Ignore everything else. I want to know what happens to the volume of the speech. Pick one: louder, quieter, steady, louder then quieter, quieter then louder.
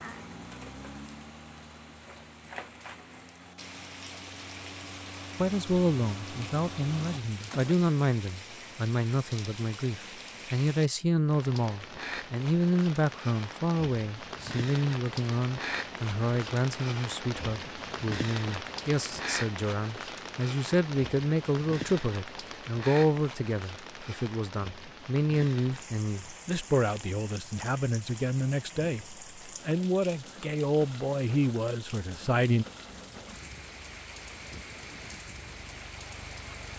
steady.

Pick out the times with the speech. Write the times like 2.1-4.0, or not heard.
5.3-32.6.